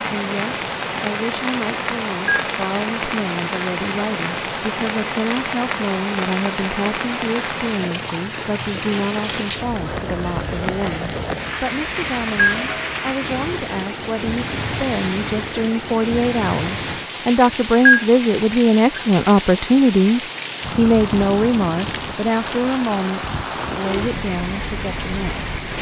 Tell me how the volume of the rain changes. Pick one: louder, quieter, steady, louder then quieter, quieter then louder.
steady.